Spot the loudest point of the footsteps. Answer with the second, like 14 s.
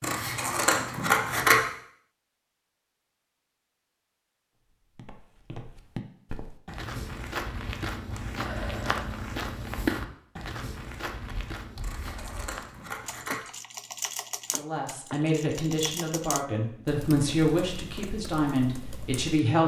10 s.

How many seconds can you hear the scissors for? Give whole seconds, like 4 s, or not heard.
3 s.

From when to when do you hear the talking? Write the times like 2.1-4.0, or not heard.
14.6-19.6.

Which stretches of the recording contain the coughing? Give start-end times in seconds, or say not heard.
not heard.